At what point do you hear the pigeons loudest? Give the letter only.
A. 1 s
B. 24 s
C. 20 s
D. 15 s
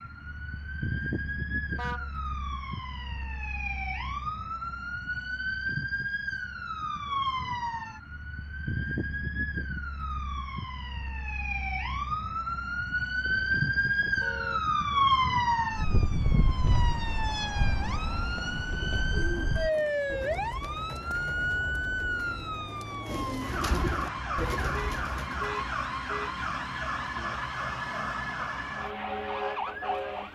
B.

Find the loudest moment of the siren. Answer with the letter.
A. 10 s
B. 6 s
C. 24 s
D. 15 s
D.